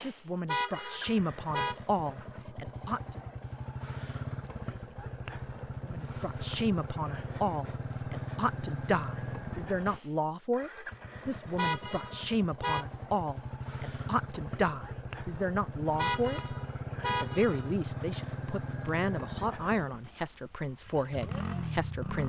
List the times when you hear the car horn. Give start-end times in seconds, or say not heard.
0.5-1.8, 11.6-12.8, 15.9-17.8.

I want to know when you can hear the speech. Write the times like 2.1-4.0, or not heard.
0.0-3.2, 5.8-22.2.